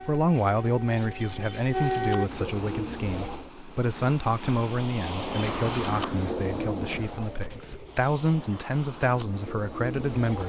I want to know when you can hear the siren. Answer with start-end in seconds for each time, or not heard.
0.0-2.3.